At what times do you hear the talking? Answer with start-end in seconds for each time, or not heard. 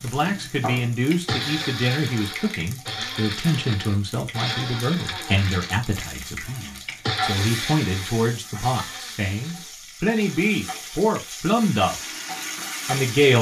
0.0-12.1, 12.8-13.3.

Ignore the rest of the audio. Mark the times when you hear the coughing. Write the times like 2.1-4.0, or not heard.
not heard.